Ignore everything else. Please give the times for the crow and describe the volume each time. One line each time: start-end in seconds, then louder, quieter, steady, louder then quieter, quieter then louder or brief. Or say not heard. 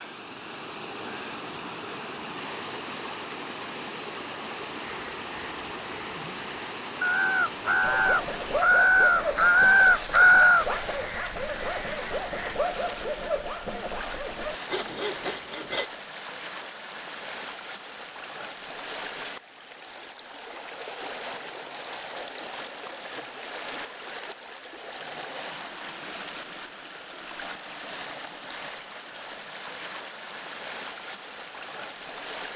4.8-12.6 louder then quieter.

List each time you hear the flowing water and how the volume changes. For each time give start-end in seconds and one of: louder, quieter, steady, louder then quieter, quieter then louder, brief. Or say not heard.
0.0-32.5 steady.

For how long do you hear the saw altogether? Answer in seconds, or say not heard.
8 s.